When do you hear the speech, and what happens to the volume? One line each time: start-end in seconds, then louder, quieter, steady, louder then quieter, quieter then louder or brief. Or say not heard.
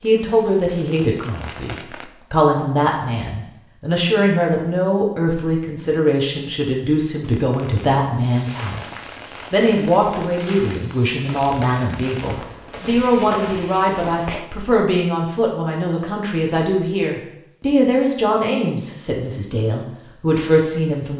0.0-21.1 steady.